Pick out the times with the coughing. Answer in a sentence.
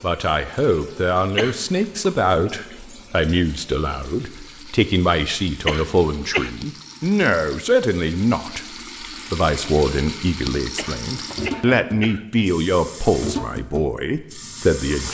You can hear the coughing from 1.4 to 1.9 s, from 5.7 to 6.5 s and from 10.8 to 12.2 s.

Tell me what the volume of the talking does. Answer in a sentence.
The volume of the talking stays about the same.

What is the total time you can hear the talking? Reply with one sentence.
The talking can be heard for 15 seconds in total.